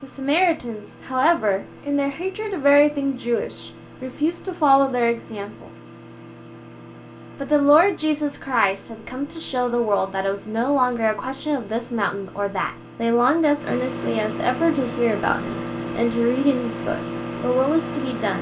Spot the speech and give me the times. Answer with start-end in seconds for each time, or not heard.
0.0-5.7, 7.4-18.3.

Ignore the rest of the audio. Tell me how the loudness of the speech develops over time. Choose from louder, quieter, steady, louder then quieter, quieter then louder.
steady.